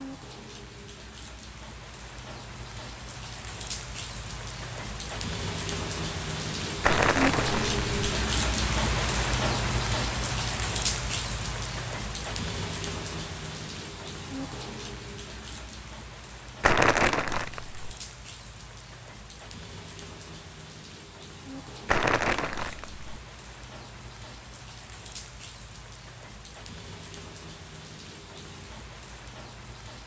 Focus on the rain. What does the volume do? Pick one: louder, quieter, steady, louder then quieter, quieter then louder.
louder then quieter.